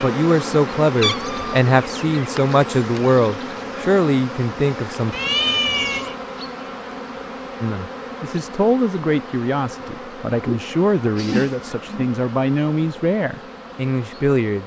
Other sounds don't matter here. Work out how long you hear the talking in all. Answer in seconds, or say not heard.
12 s.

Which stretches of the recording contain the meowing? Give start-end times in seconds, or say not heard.
1.0-1.6, 5.1-6.2, 10.4-12.2.